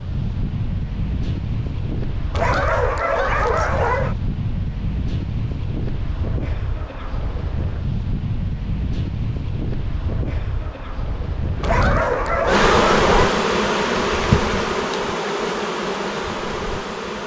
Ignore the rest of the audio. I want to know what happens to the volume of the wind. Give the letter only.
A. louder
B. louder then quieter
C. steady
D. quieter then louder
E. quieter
C.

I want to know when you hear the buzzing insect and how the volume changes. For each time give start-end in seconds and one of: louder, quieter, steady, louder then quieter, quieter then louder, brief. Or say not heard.
12.4-17.2 quieter.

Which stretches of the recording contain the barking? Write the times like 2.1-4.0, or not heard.
2.3-4.2, 11.6-13.3.